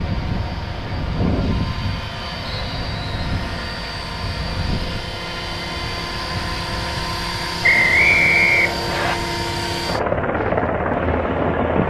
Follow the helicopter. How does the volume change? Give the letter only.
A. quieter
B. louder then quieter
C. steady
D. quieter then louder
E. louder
E.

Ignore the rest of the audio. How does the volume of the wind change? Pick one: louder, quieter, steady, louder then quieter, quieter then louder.
quieter.